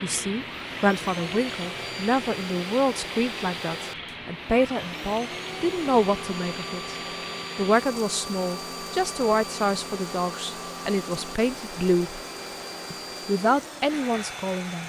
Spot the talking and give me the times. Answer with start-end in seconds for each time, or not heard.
0.0-7.0, 7.5-12.2, 12.9-14.8.